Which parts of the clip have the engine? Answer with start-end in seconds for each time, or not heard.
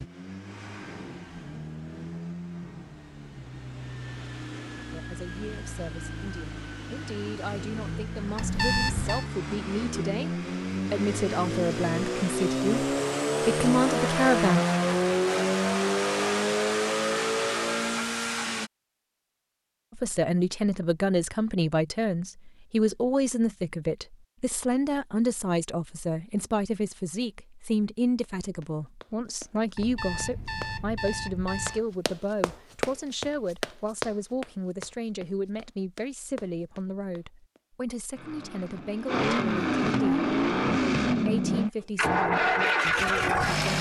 0.0-18.7, 38.1-43.7.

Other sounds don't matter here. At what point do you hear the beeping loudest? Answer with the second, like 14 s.
9 s.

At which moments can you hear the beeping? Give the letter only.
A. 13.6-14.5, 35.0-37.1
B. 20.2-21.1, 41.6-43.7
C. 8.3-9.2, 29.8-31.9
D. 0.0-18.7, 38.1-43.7
C.